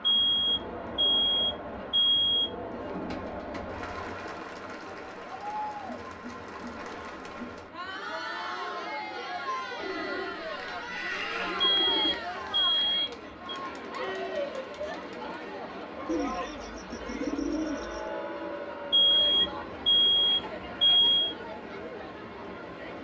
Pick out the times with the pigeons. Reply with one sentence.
The pigeons can be heard from 2.6 to 5.1 s, from 9.8 to 12.2 s and from 16.1 to 18.1 s.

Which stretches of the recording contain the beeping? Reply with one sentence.
The beeping can be heard from 0.0 to 2.5 s, from 11.7 to 13.6 s and from 18.9 to 21.4 s.